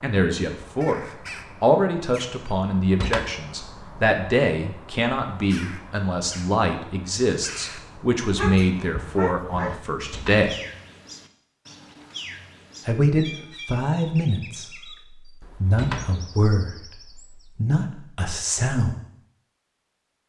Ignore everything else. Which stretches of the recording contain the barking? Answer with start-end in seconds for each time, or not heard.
8.2-9.9.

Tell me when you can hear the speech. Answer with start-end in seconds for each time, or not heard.
0.0-1.0, 1.6-10.6, 12.8-14.9, 15.6-18.9.